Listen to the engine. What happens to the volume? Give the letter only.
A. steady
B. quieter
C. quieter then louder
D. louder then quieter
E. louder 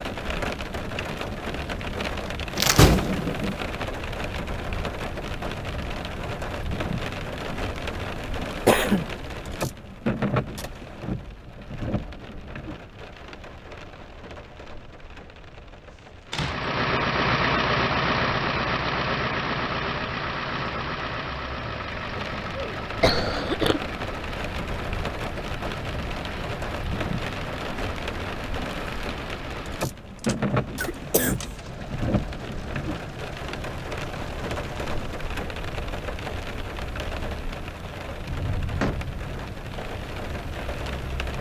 B.